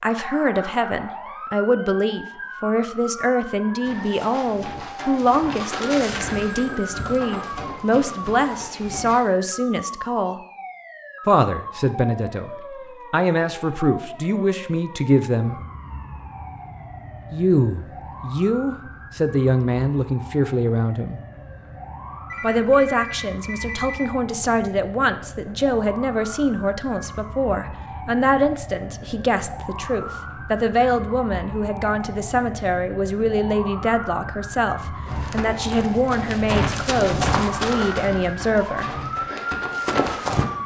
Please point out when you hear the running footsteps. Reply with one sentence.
The running footsteps can be heard from 3.8 to 9.2 s and from 35.0 to 40.5 s.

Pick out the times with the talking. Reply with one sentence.
The talking can be heard from 0.0 to 10.4 s, from 11.2 to 12.5 s, from 13.1 to 15.6 s, from 17.3 to 21.2 s and from 22.4 to 38.9 s.